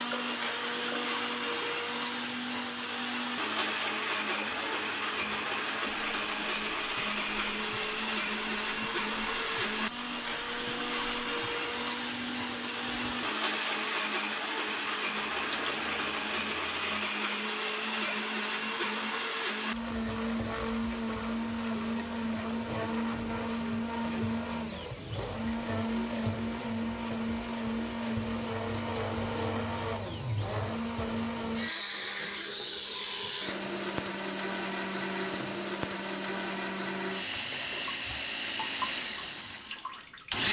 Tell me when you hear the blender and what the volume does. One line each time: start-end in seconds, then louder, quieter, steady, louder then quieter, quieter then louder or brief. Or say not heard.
0.0-40.4 steady.